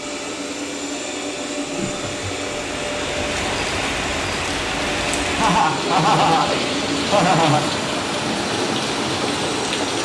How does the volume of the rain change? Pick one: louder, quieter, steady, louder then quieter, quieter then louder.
louder.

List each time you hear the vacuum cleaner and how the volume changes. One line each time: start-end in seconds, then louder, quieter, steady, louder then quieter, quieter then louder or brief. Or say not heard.
0.0-10.0 steady.